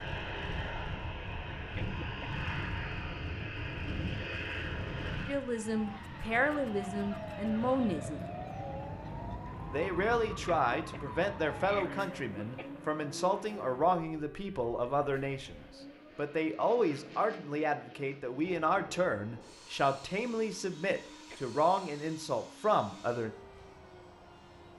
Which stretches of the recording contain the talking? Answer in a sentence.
The talking can be heard from 5.2 to 8.2 s and from 9.7 to 23.3 s.